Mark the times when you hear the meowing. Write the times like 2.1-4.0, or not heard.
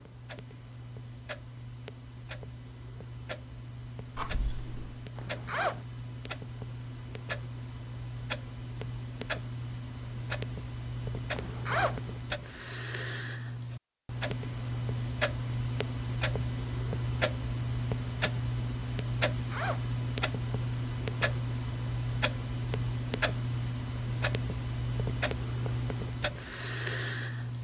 4.2-5.0.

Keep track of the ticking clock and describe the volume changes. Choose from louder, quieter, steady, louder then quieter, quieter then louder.
louder.